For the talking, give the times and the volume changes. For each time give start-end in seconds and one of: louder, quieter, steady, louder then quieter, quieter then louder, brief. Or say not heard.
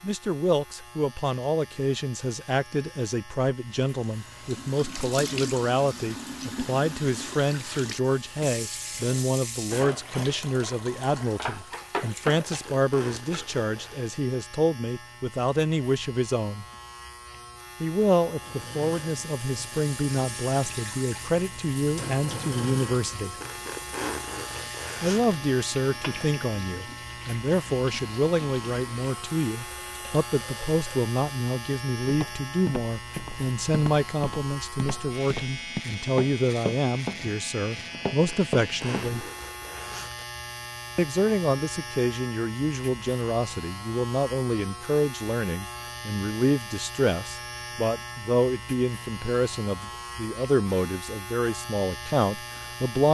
0.0-16.6 steady
17.8-23.4 steady
25.0-39.2 steady
41.0-53.0 steady.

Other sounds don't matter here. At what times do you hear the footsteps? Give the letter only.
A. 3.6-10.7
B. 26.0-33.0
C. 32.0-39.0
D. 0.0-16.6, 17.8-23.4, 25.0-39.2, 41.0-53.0
C.